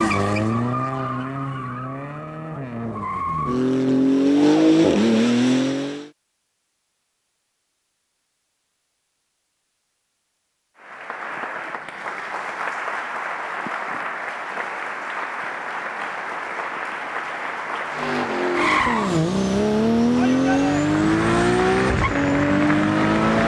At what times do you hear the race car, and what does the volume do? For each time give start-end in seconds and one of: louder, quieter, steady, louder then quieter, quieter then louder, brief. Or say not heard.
0.0-6.1 quieter then louder
17.9-23.4 steady.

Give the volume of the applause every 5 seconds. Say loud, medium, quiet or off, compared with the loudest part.
off, off, loud, loud, loud.